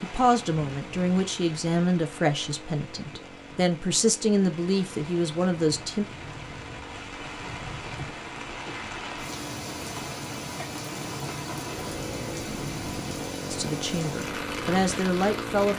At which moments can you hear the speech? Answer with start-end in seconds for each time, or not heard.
0.0-6.0, 13.5-15.7.